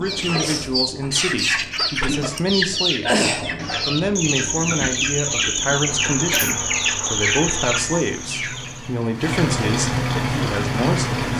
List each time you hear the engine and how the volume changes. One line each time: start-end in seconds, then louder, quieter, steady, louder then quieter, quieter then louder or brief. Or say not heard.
0.0-11.3 louder.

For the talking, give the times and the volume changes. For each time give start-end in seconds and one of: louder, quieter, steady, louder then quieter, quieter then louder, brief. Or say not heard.
0.0-11.3 steady.